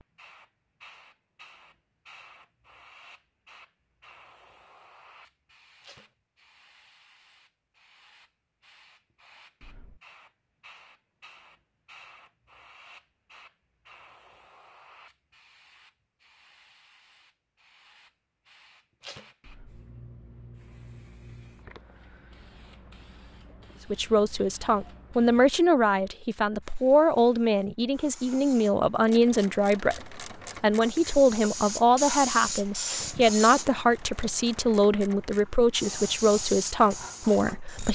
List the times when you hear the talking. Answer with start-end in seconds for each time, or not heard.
23.9-37.8.